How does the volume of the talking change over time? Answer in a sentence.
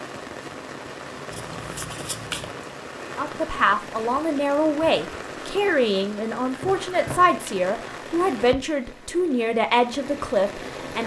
The loudness of the talking stays about the same.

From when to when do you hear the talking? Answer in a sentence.
The talking can be heard from 3.1 to 11.0 s.